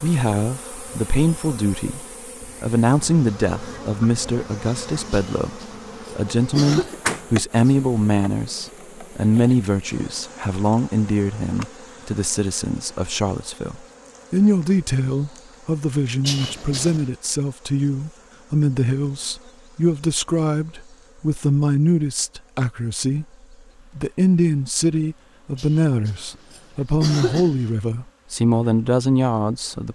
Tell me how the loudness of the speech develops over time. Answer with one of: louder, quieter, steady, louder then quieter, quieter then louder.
steady.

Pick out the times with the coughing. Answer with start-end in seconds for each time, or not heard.
5.1-7.0, 16.2-17.1, 25.6-27.6.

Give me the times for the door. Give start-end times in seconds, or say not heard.
6.7-7.8.